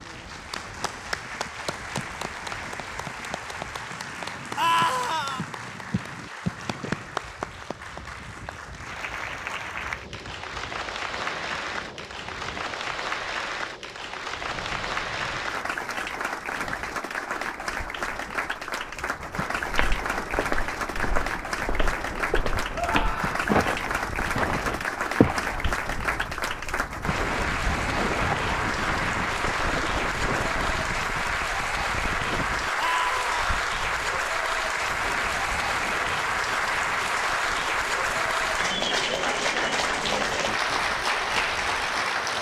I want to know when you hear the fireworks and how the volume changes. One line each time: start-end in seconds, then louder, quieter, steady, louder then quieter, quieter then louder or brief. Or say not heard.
not heard.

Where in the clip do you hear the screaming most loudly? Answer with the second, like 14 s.
5 s.